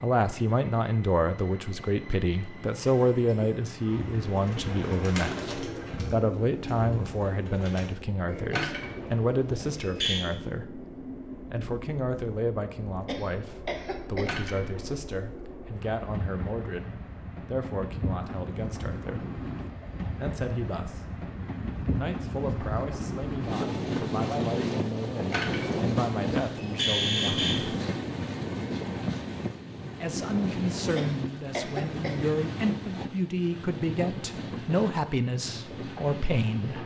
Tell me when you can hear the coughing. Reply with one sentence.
You can hear the coughing from 13.1 to 14.3 s and from 30.9 to 32.1 s.